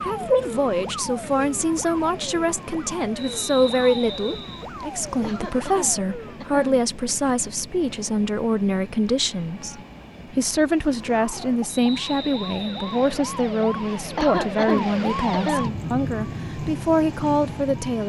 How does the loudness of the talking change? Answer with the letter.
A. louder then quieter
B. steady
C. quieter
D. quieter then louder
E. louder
B.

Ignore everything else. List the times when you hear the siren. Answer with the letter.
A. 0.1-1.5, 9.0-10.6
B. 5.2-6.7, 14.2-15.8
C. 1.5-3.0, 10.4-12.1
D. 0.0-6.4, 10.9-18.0
D.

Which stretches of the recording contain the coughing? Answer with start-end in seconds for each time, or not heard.
5.2-6.7, 14.2-15.8.